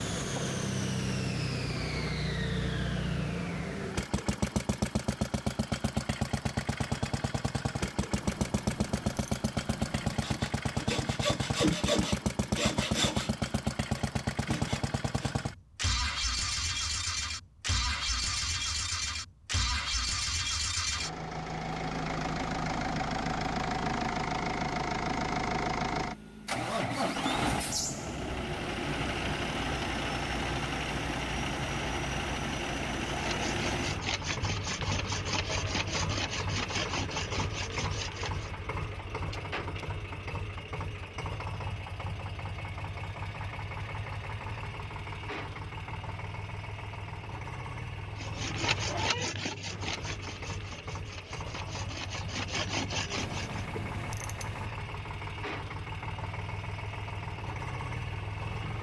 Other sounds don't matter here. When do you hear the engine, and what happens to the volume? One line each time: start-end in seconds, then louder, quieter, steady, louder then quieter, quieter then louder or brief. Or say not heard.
0.0-58.7 quieter.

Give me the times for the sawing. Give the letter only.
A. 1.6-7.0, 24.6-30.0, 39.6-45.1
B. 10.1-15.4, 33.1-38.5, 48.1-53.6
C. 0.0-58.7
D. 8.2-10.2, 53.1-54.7
B.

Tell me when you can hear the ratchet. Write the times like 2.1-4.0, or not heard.
8.2-10.2, 53.1-54.7.